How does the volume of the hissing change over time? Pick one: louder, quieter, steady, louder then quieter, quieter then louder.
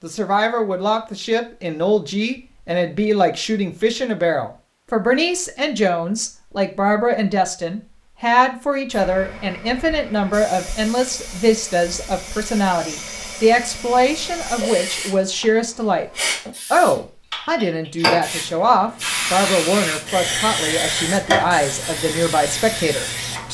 louder.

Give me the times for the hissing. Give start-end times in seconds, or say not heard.
8.9-23.4.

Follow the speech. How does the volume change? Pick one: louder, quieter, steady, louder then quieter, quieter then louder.
steady.